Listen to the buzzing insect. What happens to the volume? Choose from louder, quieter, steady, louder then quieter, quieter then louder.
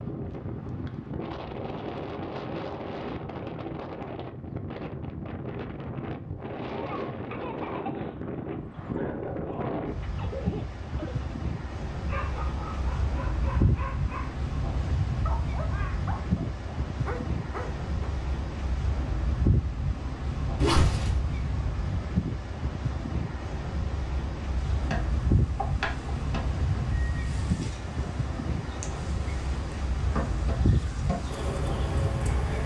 quieter then louder.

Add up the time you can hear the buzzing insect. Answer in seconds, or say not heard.
8 s.